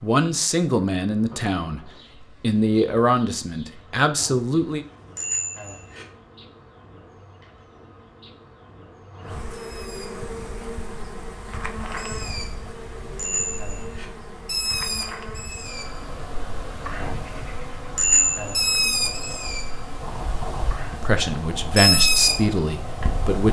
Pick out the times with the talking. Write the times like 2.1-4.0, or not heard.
0.0-4.8, 20.9-23.4.